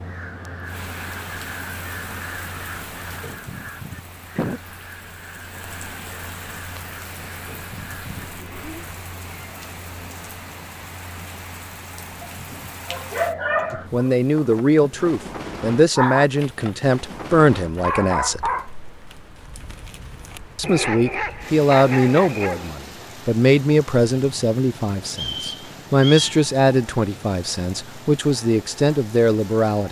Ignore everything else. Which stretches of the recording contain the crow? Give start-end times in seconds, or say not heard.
0.0-8.9.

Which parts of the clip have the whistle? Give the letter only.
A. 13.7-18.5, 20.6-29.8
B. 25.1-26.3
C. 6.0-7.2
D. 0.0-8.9
B.